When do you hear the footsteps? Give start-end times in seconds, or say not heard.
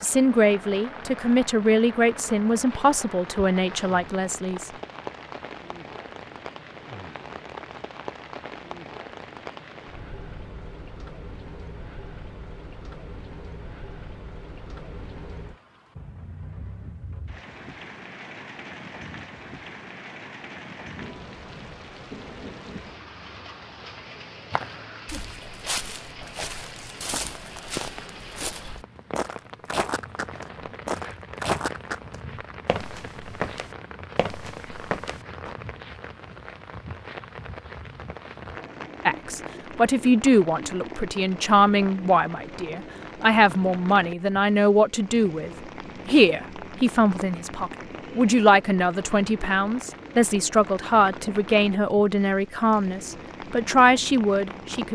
24.5-35.5.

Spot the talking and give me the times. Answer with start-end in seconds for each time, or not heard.
0.0-4.7, 39.0-54.8.